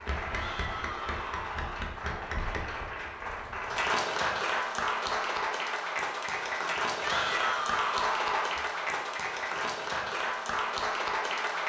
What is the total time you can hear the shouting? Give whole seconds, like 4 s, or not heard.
3 s.